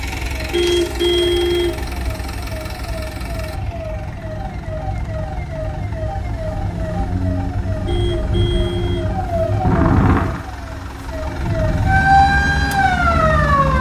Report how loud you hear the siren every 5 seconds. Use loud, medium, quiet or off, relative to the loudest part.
quiet, medium, loud.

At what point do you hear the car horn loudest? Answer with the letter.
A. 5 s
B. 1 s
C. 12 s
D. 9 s
B.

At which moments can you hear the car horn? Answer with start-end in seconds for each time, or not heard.
0.5-1.9, 7.8-9.2.